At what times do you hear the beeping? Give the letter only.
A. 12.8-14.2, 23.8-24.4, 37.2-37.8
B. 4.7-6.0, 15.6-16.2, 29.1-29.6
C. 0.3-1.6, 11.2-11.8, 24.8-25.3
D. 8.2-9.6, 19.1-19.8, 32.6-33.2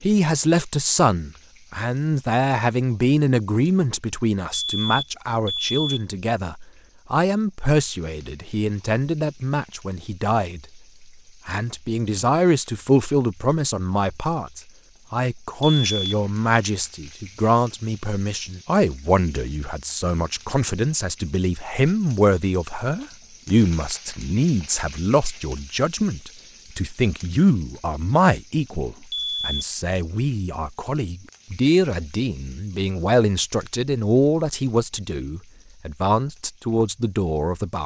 B.